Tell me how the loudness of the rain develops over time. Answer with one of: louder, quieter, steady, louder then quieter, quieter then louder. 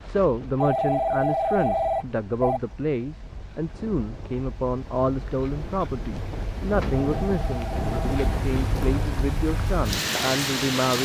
louder.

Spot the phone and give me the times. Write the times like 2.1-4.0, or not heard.
0.6-2.6, 6.9-8.2.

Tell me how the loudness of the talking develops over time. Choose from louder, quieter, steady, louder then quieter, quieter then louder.
steady.